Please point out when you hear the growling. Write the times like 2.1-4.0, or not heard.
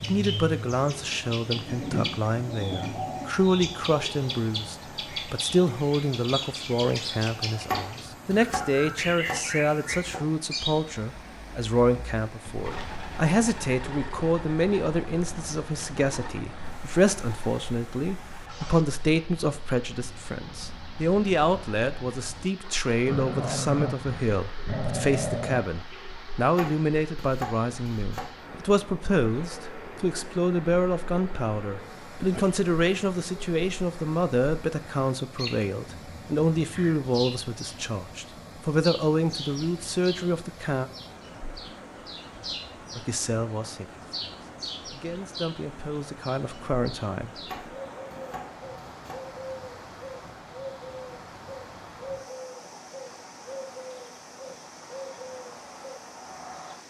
23.1-25.6.